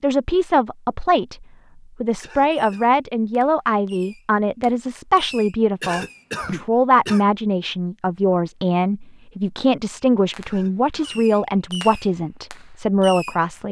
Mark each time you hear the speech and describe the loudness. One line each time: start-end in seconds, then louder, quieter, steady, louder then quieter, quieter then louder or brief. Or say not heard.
0.0-13.6 steady.